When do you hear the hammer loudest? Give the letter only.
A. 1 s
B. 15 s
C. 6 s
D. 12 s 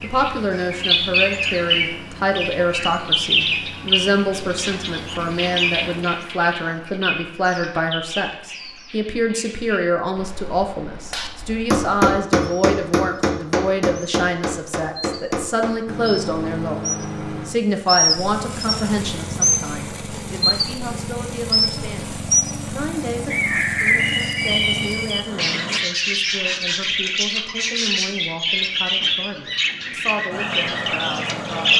D.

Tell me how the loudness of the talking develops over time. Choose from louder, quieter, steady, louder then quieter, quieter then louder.
quieter.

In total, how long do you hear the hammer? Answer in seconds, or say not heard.
5 s.